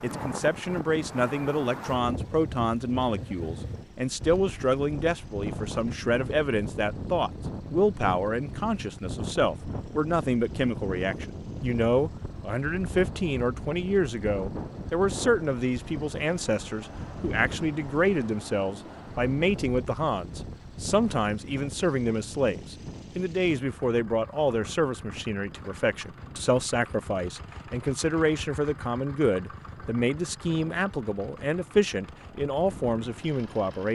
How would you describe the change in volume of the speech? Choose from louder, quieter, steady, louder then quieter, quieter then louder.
steady.